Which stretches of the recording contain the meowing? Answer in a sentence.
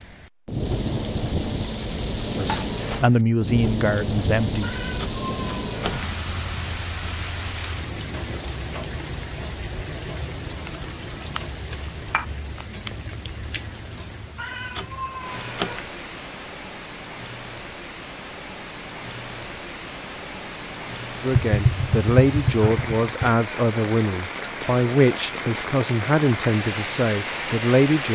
You can hear the meowing from 4.6 to 6.1 s and from 14.3 to 15.8 s.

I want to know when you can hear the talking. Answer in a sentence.
You can hear the talking from 2.4 to 4.8 s and from 21.2 to 28.0 s.